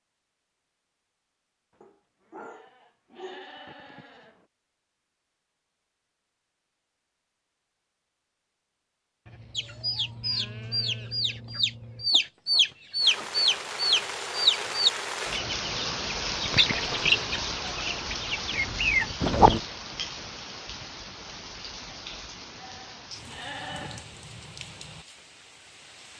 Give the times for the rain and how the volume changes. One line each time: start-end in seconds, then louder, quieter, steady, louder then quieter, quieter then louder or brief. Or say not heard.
13.0-26.1 quieter.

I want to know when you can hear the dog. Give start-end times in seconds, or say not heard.
1.8-3.5.